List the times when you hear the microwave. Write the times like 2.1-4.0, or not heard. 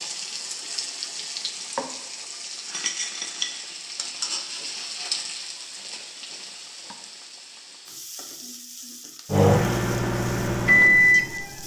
9.3-11.6.